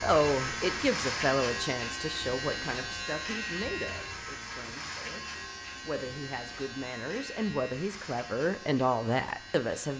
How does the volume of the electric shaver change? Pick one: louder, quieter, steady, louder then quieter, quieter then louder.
quieter.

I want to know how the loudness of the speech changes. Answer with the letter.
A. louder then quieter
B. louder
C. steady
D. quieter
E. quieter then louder
E.